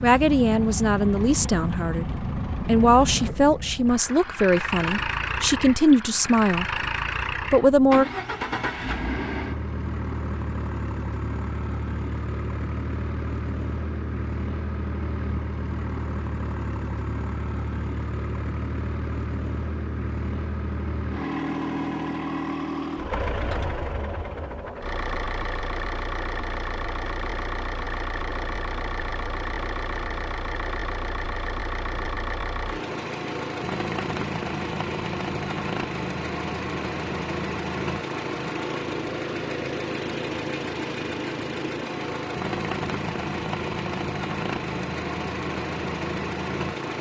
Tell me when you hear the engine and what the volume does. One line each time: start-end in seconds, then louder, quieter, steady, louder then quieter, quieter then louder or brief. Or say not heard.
0.0-46.9 steady.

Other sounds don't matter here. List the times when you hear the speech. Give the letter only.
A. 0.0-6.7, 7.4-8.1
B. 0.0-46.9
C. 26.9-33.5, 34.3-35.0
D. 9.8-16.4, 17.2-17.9
A.